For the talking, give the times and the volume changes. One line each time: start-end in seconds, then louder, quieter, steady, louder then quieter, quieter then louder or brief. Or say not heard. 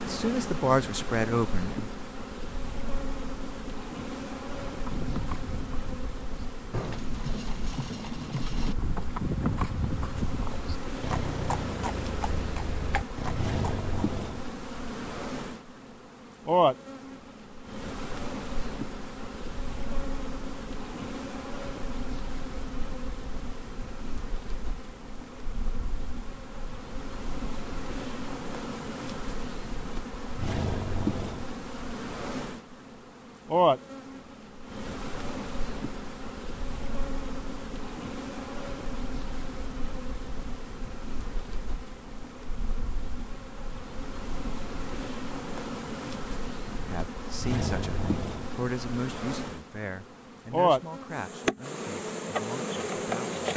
0.1-1.9 brief
46.7-53.4 quieter.